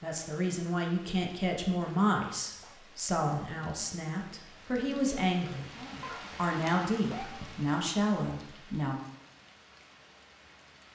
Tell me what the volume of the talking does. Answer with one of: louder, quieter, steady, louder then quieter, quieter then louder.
steady.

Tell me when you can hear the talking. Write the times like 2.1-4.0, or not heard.
0.0-8.9.